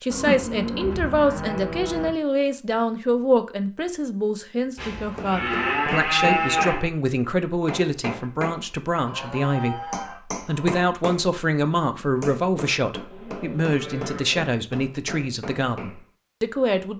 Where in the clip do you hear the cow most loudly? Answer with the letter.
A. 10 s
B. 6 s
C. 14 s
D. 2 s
B.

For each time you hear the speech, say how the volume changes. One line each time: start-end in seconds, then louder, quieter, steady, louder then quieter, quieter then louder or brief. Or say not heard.
0.0-16.9 steady.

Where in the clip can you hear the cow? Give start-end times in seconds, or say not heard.
0.1-2.1, 4.8-6.9, 8.9-10.8, 13.1-14.6.